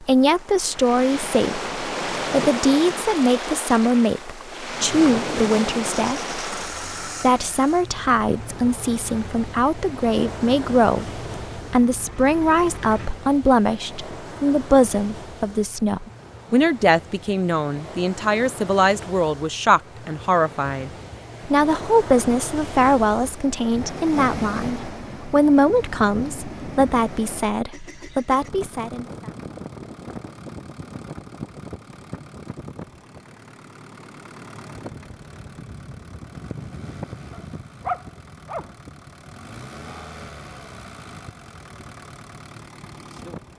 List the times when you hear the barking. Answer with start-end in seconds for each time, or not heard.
37.3-38.7.